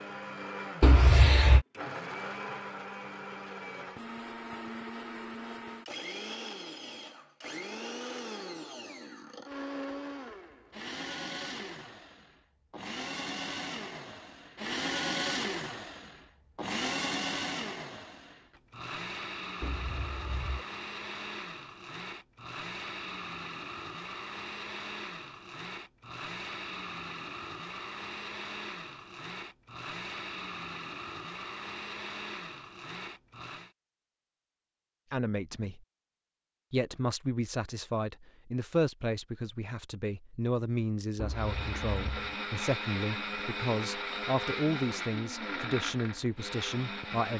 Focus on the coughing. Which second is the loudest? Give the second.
1 s.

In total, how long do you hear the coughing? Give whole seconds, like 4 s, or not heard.
3 s.